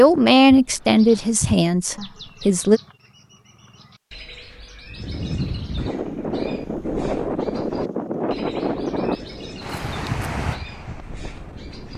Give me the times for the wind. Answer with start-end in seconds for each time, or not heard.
4.9-11.9.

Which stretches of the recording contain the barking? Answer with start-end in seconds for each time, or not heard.
not heard.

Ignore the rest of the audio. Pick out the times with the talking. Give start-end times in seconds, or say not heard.
0.0-2.8.